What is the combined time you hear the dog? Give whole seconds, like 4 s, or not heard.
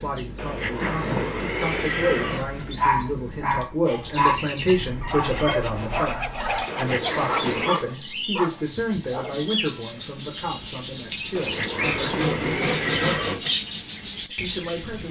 7 s.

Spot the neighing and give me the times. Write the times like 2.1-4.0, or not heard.
0.3-2.4, 6.7-7.8, 11.3-13.3.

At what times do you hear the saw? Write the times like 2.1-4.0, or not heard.
0.8-2.7, 5.0-7.5, 11.8-13.6.